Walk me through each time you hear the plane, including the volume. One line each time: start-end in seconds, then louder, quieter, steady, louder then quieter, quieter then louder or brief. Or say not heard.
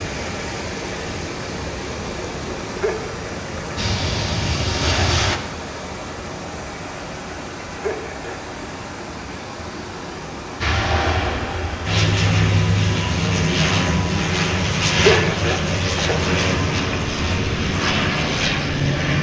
3.8-5.4 brief
10.6-19.1 steady.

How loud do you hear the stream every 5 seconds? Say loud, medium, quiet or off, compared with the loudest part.
loud, loud, loud, off.